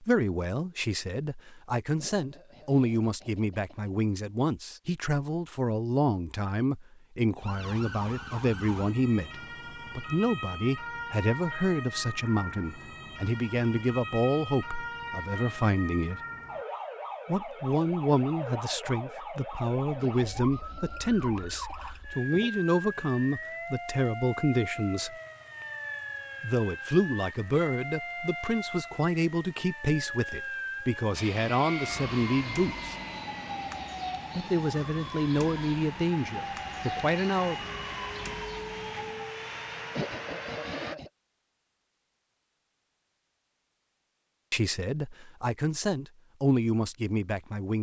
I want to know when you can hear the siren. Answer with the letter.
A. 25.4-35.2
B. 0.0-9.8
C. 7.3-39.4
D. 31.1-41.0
C.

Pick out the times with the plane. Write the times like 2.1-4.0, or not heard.
31.1-41.0.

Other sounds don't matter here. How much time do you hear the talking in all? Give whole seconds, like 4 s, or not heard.
37 s.